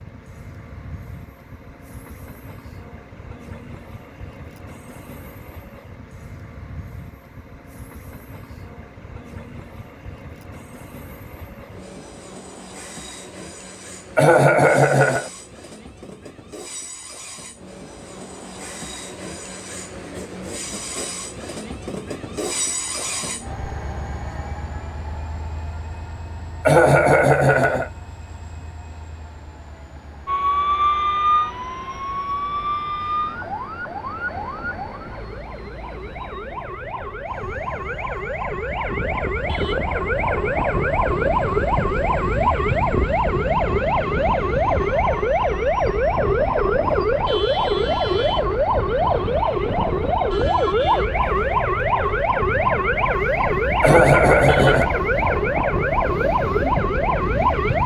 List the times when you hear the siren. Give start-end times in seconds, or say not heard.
30.2-57.8.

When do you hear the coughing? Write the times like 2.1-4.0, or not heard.
14.2-15.3, 26.6-27.9, 53.8-54.9.